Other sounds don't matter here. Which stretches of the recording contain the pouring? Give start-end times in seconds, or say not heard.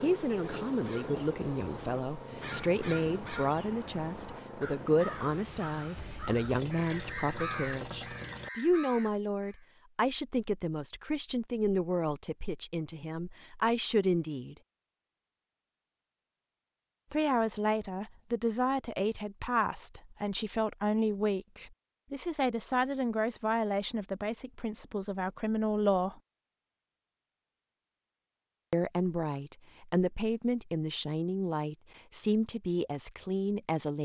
6.5-8.5.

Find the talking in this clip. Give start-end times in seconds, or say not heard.
0.0-14.6, 17.1-26.2, 28.7-34.0.